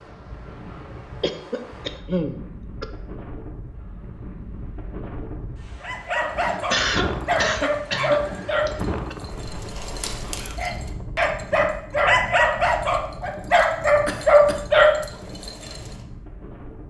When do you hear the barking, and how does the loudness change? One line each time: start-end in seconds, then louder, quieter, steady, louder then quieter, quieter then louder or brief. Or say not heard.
5.8-15.8 louder.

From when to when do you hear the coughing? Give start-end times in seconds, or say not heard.
1.2-2.9, 6.5-9.2, 14.1-14.7.